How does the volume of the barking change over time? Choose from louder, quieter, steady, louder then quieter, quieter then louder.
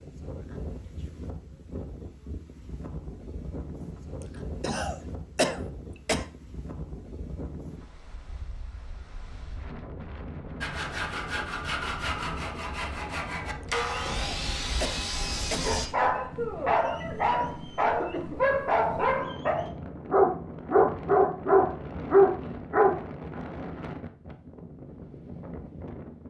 louder.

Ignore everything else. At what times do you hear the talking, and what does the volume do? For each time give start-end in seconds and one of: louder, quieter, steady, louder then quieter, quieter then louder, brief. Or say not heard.
not heard.